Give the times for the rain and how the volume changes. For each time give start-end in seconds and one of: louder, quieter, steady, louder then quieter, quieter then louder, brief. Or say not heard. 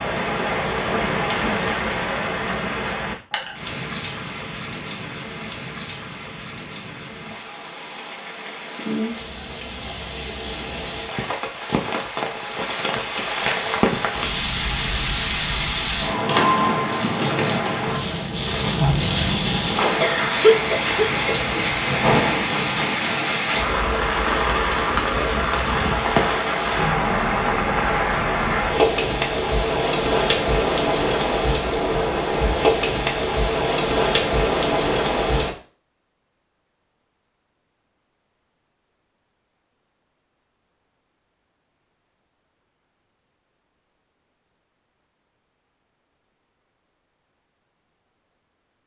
0.0-35.5 louder.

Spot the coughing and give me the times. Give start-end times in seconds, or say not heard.
20.0-21.4.